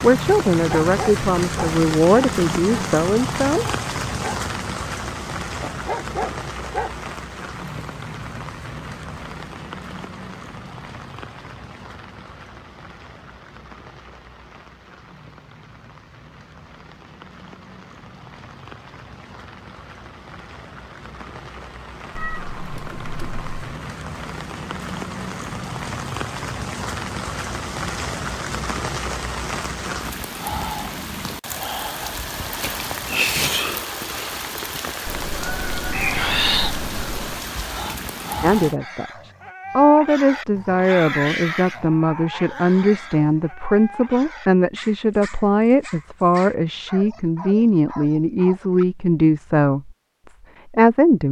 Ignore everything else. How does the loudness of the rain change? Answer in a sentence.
The loudness of the rain goes down, then up.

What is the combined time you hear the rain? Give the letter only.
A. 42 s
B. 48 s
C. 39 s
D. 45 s
C.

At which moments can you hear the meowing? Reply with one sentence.
The meowing can be heard from 22.1 to 23.8 s and from 35.0 to 37.5 s.